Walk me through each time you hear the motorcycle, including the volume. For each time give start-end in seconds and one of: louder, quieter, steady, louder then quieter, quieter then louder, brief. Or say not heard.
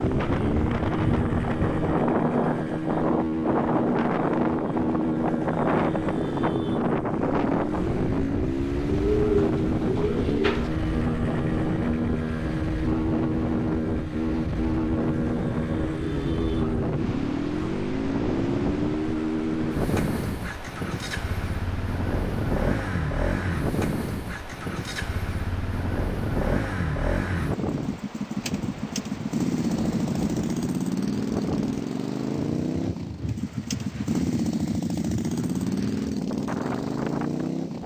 0.0-37.8 steady.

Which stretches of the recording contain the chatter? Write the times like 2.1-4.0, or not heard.
not heard.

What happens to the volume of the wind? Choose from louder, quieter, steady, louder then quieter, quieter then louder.
quieter.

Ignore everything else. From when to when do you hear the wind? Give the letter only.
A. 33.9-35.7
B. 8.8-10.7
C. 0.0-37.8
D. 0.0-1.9
C.